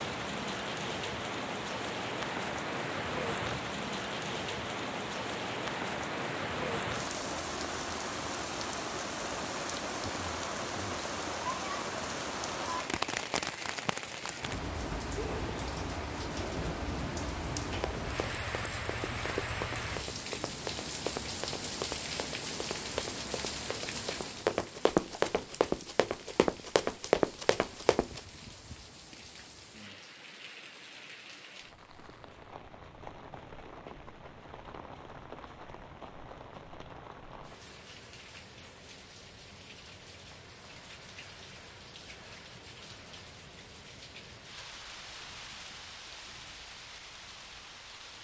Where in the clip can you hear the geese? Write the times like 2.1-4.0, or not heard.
not heard.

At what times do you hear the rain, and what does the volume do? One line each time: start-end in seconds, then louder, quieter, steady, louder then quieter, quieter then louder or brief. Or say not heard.
0.0-48.2 quieter.